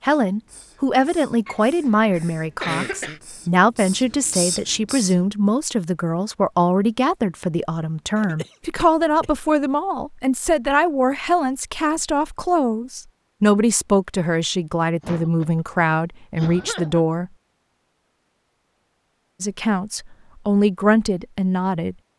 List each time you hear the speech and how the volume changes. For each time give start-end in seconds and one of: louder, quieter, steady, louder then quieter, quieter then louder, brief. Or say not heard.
0.0-17.3 steady
19.4-21.9 brief.